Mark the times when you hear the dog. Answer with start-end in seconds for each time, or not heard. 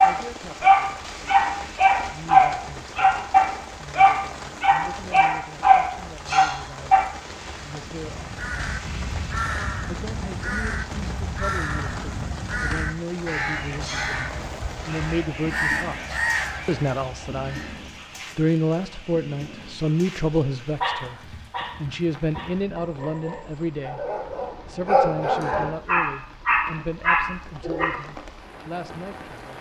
0.0-7.0, 20.8-27.9.